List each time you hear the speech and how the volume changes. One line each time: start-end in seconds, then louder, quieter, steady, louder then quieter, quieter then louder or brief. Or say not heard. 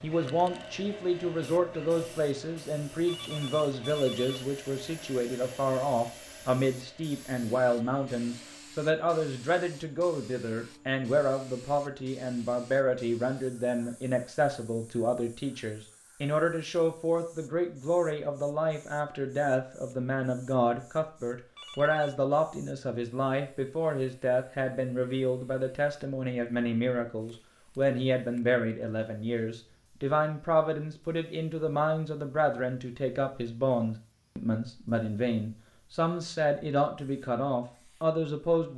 0.0-38.7 steady.